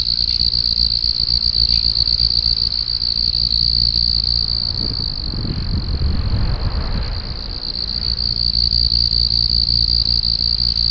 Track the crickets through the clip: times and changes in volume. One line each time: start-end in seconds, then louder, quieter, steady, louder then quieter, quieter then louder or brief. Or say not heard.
0.0-10.8 quieter then louder.